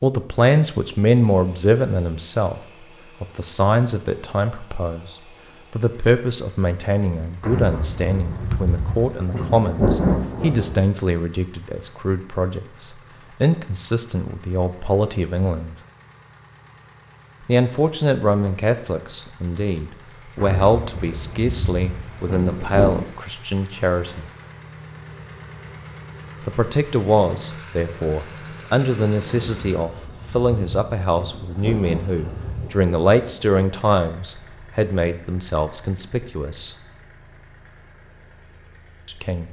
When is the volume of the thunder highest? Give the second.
10 s.